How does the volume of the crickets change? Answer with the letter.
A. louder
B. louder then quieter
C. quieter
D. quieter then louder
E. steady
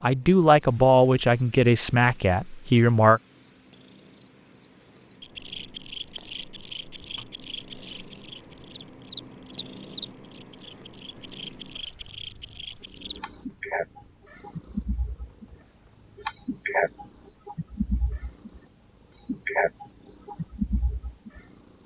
A.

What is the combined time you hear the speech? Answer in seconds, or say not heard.
3 s.